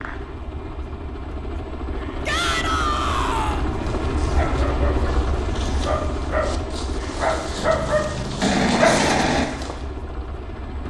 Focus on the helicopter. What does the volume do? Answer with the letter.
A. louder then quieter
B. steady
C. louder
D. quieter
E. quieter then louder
A.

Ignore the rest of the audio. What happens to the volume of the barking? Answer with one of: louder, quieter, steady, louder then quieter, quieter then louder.
louder.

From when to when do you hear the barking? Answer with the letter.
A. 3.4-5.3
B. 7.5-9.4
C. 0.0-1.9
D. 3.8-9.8
D.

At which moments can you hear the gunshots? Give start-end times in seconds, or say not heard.
7.5-9.4.